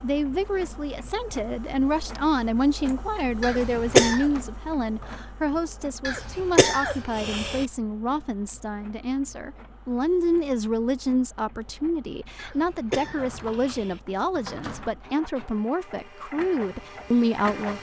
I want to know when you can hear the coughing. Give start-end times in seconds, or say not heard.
3.4-4.2, 6.0-7.7, 12.3-14.0.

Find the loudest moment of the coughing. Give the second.
4 s.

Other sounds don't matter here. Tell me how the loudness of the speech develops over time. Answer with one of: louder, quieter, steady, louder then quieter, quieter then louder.
steady.